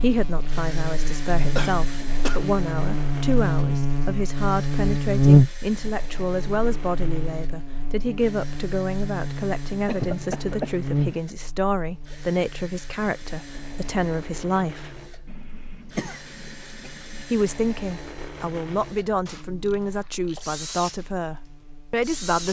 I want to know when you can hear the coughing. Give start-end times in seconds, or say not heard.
1.6-2.5, 9.8-10.8, 15.2-17.2.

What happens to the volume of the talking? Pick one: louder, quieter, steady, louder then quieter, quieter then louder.
steady.